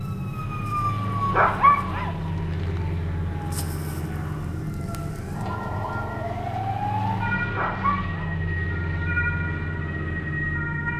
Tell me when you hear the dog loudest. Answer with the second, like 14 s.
2 s.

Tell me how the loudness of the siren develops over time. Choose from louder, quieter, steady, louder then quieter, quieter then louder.
quieter then louder.